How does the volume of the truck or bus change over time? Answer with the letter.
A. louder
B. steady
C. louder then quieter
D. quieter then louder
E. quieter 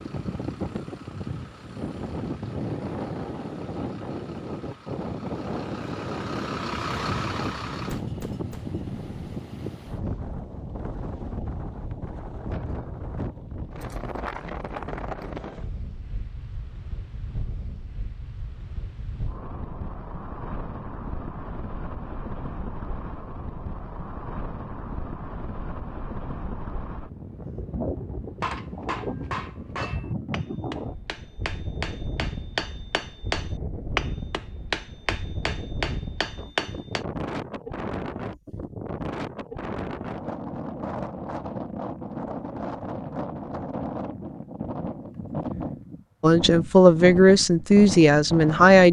A.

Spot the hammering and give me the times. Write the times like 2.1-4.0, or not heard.
28.4-37.0.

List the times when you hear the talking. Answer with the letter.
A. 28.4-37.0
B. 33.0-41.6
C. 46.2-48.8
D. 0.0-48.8
C.